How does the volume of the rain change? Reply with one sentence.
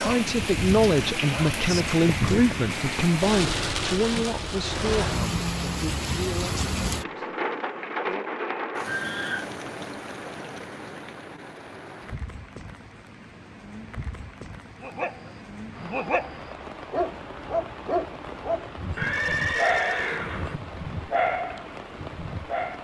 The loudness of the rain goes down.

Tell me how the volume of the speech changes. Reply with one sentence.
The loudness of the speech goes down.